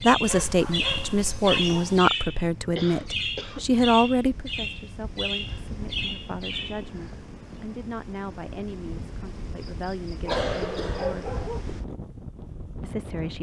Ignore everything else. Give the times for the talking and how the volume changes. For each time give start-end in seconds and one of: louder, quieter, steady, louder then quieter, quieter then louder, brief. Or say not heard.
0.0-11.4 quieter
12.8-13.3 brief.